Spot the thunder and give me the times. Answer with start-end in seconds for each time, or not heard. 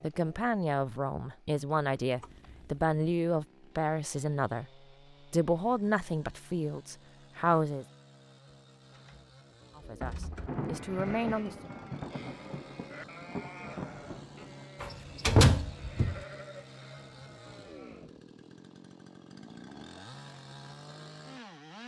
10.3-14.7.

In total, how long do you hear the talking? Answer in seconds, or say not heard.
9 s.